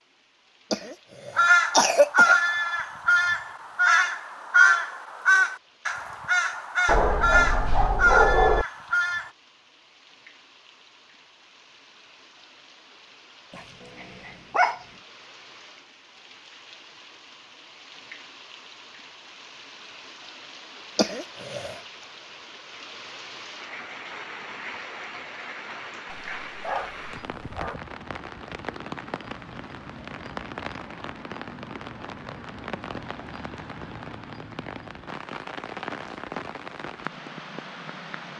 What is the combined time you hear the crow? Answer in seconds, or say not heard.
8 s.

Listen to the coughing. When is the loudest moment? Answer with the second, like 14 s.
2 s.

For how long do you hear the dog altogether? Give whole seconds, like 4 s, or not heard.
5 s.